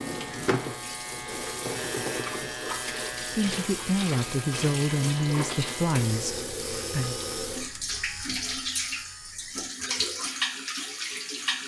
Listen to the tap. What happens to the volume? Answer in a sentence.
The loudness of the tap stays about the same.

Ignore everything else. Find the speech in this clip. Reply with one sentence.
You can hear the speech from 3.3 to 7.2 s.